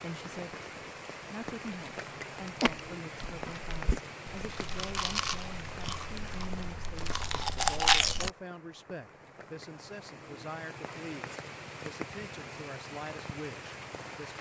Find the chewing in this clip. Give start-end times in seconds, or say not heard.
2.5-8.3.